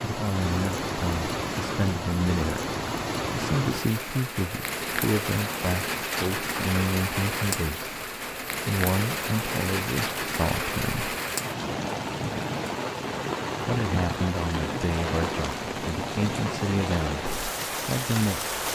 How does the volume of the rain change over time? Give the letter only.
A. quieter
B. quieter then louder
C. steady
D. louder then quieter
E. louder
C.